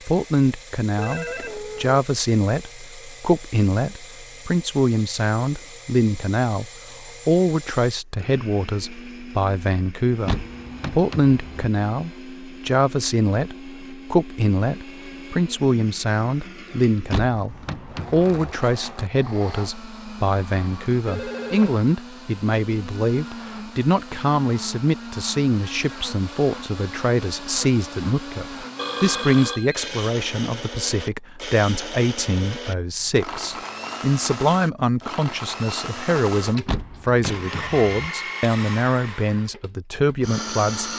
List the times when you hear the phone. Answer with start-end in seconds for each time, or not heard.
0.9-2.0, 21.1-21.8, 28.8-30.1.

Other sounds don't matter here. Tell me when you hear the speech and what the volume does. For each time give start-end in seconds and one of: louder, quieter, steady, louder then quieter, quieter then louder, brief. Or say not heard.
0.1-40.9 steady.